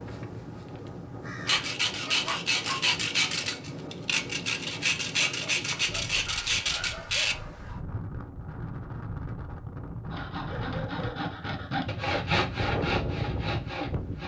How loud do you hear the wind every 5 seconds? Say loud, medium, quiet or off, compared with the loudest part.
medium, medium, loud.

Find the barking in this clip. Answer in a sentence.
The barking can be heard from 1.4 to 2.8 s, from 5.1 to 7.7 s and from 10.4 to 11.3 s.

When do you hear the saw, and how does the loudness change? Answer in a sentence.
The saw can be heard from 1.4 to 7.3 s, at a steady volume; and from 10.1 to 14.2 s, getting louder then quieter.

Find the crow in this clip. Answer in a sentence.
The crow can be heard from 0.0 to 1.6 s.